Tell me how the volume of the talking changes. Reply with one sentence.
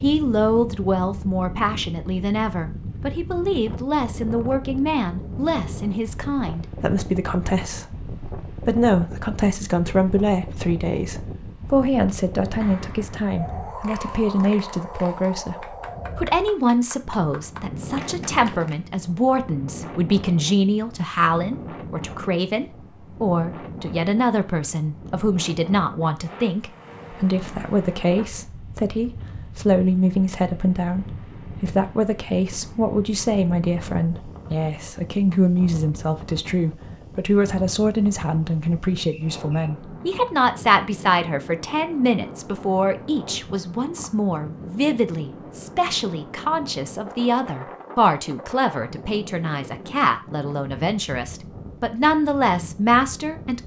The loudness of the talking stays about the same.